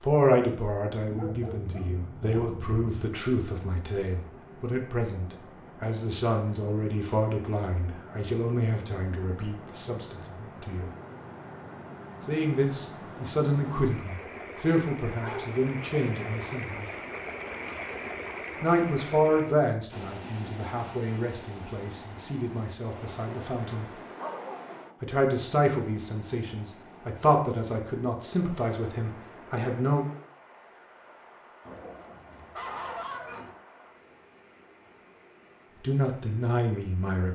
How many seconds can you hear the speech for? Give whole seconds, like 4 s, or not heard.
27 s.